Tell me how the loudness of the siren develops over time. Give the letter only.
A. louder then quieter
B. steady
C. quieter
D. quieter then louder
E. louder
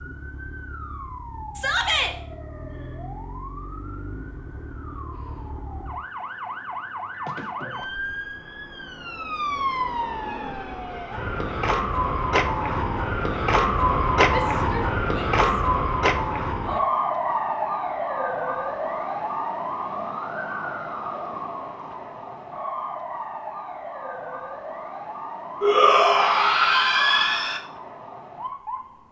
A.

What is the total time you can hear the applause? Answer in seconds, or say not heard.
not heard.